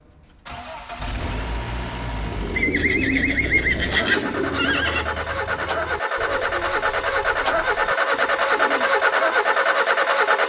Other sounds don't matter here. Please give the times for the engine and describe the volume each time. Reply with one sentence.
The engine can be heard from 0.0 to 10.4 s, getting louder.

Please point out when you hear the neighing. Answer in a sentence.
You can hear the neighing from 2.5 to 5.1 s.